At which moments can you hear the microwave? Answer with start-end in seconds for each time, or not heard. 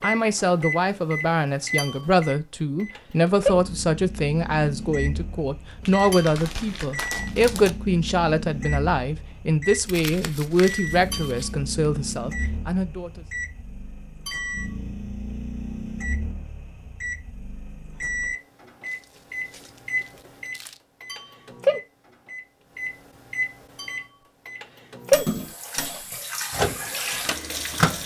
0.0-27.9.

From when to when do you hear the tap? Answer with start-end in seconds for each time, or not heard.
25.1-27.9.